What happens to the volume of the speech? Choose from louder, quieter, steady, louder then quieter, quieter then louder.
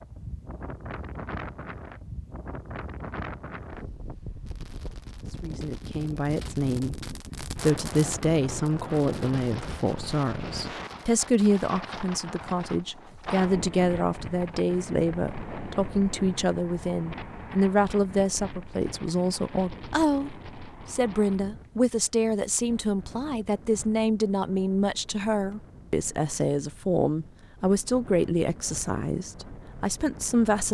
steady.